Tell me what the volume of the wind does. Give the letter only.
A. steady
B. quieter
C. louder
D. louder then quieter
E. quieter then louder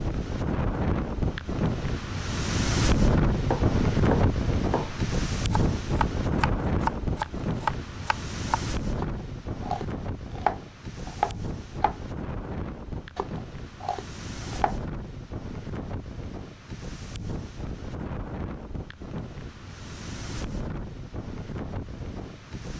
B.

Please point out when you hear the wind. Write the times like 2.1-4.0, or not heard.
0.0-22.7.